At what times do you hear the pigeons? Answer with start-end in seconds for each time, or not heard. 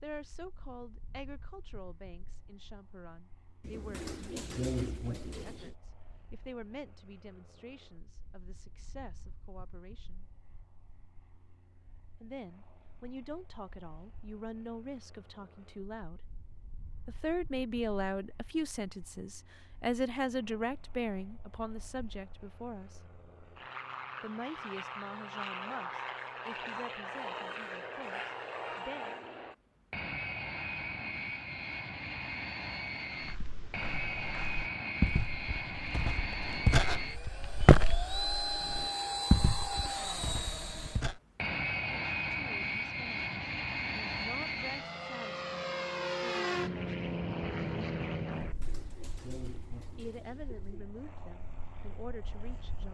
3.6-5.7, 48.3-50.9.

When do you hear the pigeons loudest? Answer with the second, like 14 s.
5 s.